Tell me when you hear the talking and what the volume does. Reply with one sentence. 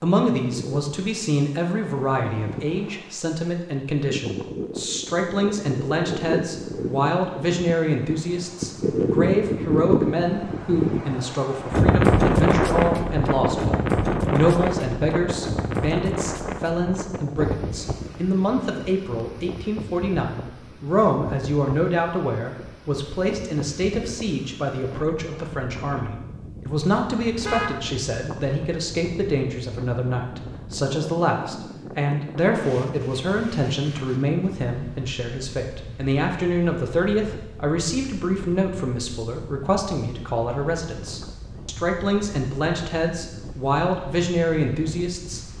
You can hear the talking from 0.0 to 45.5 s, at a steady volume.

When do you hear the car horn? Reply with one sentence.
You can hear the car horn from 27.2 to 28.4 s.